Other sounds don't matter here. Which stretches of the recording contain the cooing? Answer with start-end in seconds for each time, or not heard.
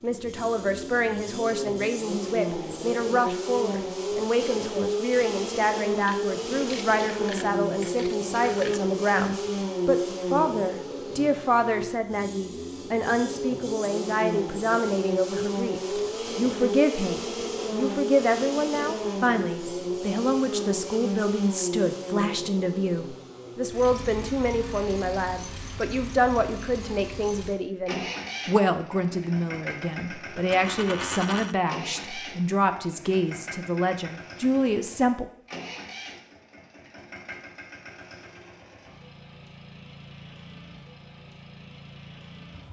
not heard.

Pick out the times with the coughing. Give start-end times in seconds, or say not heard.
not heard.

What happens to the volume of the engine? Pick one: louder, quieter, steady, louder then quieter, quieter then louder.
quieter.